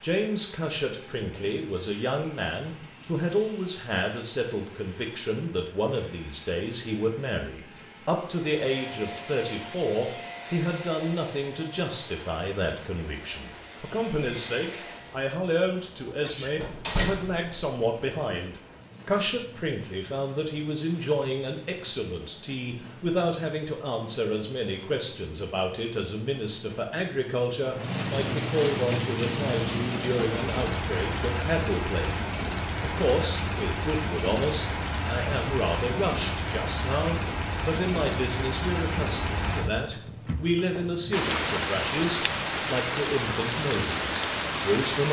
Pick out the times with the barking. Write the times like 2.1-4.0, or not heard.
not heard.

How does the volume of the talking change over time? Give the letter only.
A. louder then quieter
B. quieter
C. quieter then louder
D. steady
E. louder
D.